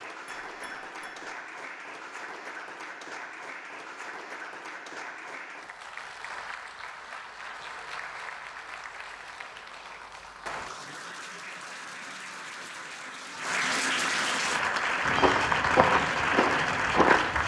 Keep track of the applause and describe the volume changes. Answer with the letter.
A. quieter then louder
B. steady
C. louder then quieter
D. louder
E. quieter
D.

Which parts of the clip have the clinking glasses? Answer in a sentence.
The clinking glasses can be heard from 0.2 to 1.3 s.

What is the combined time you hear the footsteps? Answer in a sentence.
You can hear the footsteps for 2 seconds altogether.